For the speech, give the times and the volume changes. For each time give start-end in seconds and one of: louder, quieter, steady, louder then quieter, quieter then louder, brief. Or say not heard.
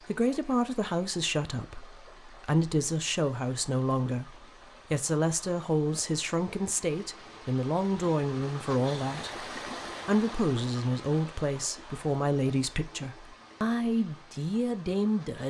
0.1-15.4 steady.